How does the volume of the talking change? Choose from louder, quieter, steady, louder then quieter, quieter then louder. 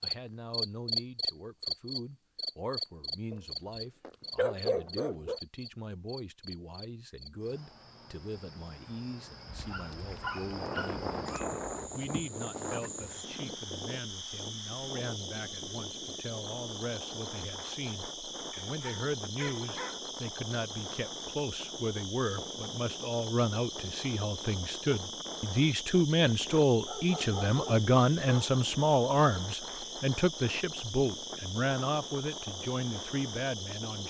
louder.